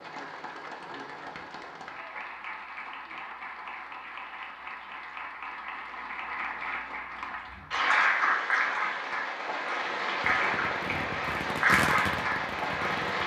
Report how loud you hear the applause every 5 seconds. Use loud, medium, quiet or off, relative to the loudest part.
quiet, loud, loud.